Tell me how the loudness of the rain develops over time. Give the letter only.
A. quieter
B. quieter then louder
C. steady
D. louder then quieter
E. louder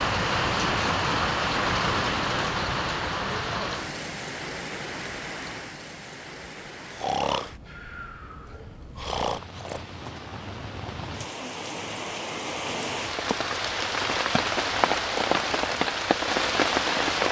B.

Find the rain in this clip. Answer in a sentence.
The rain can be heard from 0.0 to 17.2 s.